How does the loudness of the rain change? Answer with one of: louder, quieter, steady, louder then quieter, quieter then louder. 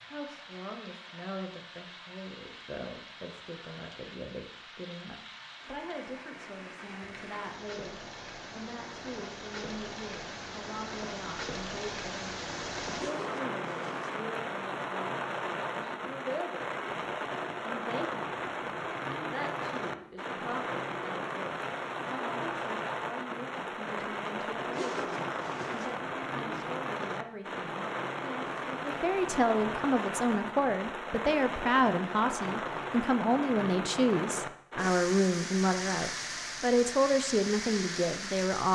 louder.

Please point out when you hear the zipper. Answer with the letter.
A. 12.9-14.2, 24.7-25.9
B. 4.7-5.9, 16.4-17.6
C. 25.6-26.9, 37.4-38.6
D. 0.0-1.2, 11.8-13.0
A.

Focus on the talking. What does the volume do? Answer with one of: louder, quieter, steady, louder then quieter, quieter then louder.
louder.